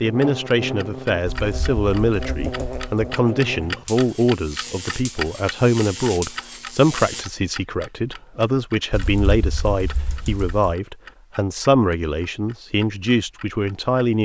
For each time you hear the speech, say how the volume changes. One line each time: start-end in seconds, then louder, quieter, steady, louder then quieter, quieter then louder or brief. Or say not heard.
0.0-14.2 steady.